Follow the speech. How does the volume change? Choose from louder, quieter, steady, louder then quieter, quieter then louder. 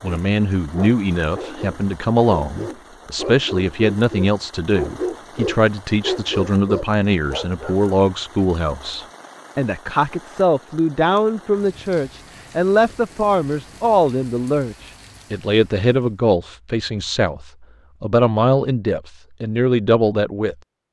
steady.